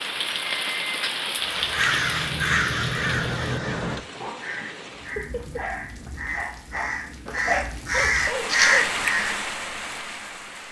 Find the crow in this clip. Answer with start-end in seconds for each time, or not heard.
1.4-9.3.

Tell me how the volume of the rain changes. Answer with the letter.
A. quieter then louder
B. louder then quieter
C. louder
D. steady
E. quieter
A.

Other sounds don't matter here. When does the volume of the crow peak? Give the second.
9 s.